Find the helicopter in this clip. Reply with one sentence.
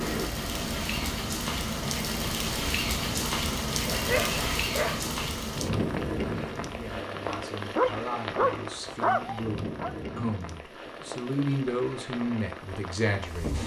You can hear the helicopter from 0.0 to 7.0 s.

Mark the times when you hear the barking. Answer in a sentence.
The barking can be heard from 3.9 to 5.2 s and from 7.2 to 9.9 s.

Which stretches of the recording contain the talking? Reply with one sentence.
You can hear the talking from 6.7 to 13.6 s.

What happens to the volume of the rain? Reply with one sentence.
The loudness of the rain goes down.